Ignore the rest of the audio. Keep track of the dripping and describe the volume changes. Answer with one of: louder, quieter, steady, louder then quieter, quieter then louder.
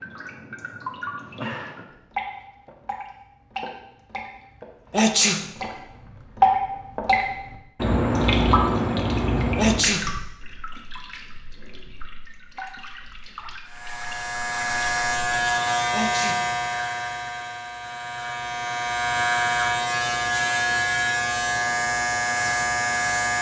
louder then quieter.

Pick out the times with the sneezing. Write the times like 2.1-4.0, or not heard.
4.9-5.5, 9.6-10.2, 15.9-16.5.